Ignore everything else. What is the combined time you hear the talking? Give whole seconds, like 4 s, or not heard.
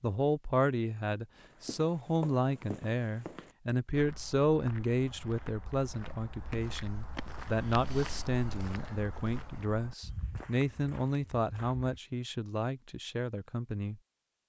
14 s.